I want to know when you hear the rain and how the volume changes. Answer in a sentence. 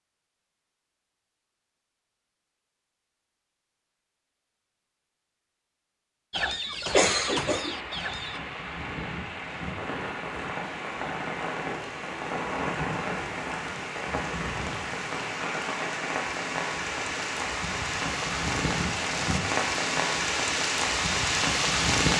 You can hear the rain from 6.8 to 22.1 s, getting louder.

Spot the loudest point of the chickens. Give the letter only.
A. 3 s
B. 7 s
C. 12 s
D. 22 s
B.